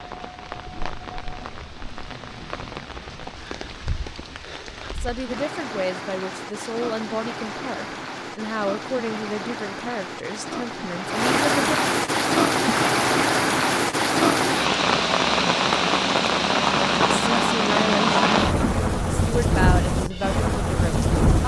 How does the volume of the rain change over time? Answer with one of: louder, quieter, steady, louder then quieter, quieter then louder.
louder.